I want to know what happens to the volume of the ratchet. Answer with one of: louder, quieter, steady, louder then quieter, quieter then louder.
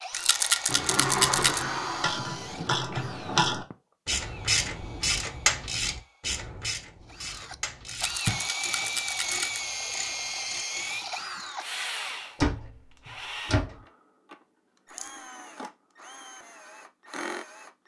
quieter.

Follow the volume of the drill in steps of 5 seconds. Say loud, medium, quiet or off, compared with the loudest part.
medium, loud, loud, medium.